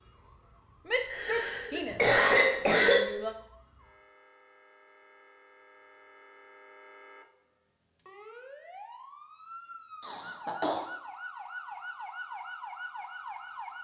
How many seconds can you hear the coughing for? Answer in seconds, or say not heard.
3 s.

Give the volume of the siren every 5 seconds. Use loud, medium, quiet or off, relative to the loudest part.
quiet, medium, loud.